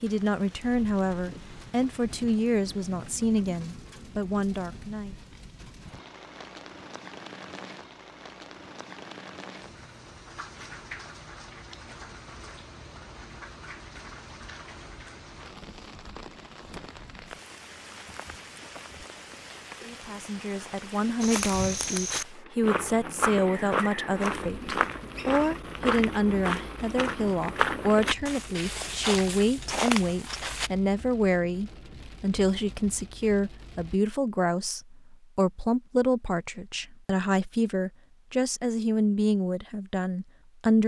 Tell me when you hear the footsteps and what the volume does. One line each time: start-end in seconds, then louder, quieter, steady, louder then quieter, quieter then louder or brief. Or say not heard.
21.2-30.7 steady.